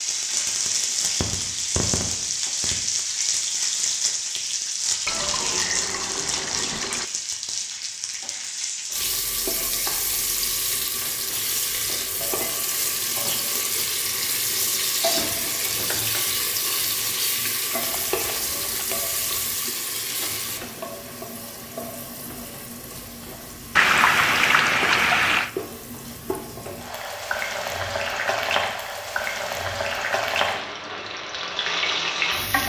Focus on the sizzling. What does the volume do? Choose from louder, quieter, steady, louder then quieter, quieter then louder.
quieter then louder.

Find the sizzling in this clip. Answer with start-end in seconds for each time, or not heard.
0.0-32.6.